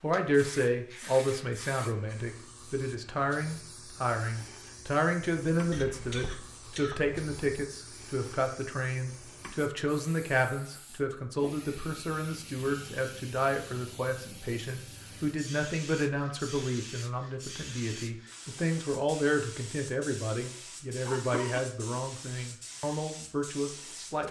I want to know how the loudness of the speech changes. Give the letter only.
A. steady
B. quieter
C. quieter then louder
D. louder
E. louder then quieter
A.